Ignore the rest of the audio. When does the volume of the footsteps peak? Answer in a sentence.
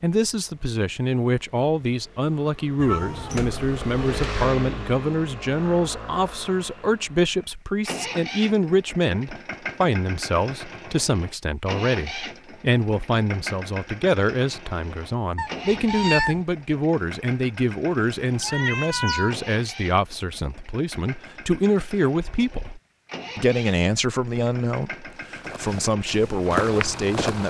The volume of the footsteps peaks at 27 seconds.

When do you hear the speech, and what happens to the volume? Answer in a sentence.
You can hear the speech from 0.0 to 27.4 s, at a steady volume.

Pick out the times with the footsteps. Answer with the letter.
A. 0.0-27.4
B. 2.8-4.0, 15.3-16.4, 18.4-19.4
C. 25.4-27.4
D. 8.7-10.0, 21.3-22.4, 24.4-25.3
C.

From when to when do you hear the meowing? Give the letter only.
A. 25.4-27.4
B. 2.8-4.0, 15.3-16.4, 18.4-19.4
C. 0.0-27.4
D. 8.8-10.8
B.